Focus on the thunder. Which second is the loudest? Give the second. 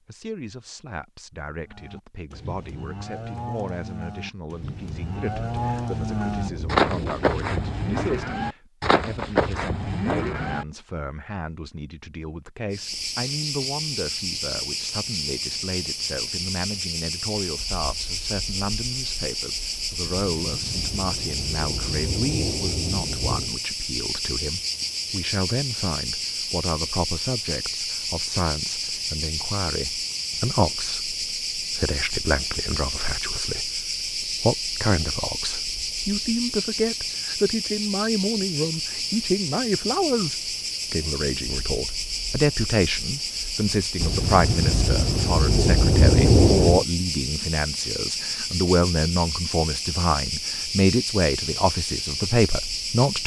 46 s.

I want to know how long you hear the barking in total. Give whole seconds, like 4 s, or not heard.
not heard.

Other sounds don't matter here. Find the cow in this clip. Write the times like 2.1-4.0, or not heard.
1.6-10.7.